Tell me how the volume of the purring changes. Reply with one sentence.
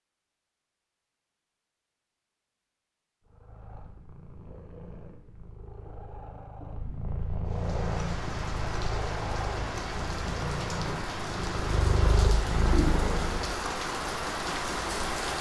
The volume of the purring goes up.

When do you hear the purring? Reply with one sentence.
The purring can be heard from 3.3 to 13.6 s.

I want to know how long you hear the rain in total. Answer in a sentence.
You can hear the rain for 8 seconds altogether.